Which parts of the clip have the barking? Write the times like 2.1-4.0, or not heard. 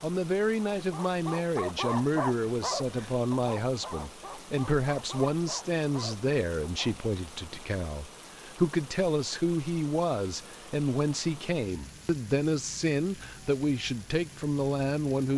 0.8-7.0.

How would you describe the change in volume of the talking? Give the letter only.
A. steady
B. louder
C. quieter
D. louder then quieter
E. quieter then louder
A.